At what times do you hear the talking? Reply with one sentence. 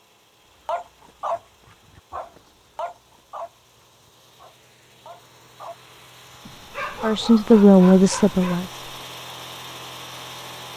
You can hear the talking from 7.0 to 8.7 s.